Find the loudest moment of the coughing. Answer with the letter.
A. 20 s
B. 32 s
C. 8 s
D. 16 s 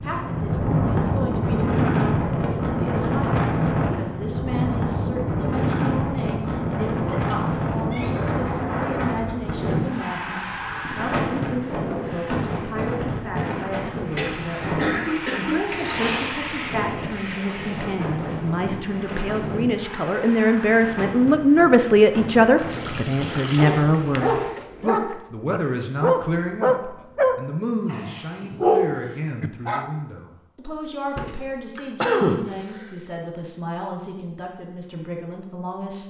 B.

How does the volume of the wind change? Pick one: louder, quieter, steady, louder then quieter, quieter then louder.
quieter.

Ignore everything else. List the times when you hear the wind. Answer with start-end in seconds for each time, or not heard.
0.0-24.5.